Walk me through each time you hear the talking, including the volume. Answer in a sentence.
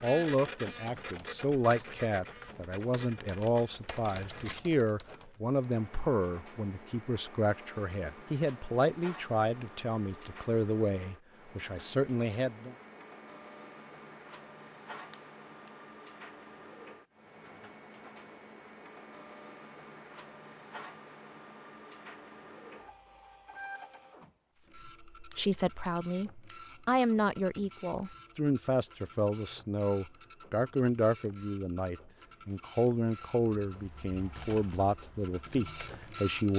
The talking can be heard from 0.0 to 12.8 s, at a steady volume; and from 24.6 to 36.5 s, at a steady volume.